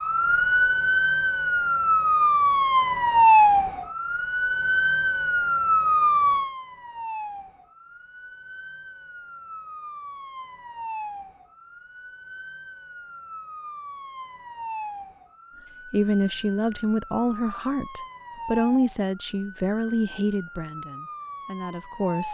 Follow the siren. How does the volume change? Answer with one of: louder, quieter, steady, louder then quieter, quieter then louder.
quieter.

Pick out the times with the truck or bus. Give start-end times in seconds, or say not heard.
not heard.